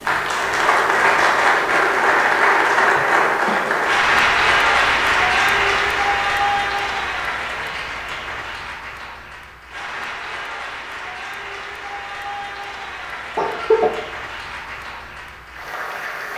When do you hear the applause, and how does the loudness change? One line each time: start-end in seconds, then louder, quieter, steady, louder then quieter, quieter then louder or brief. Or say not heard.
0.0-16.3 quieter.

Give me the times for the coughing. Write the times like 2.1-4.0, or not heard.
3.0-3.8, 13.3-13.9.